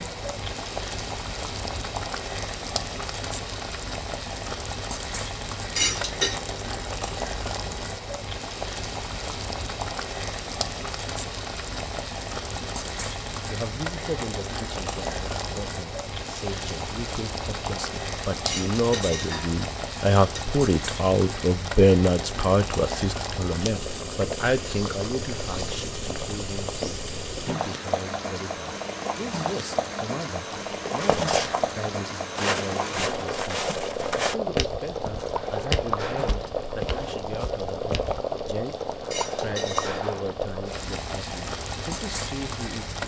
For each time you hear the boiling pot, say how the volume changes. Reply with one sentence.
The boiling pot can be heard from 0.0 to 43.0 s, at a steady volume.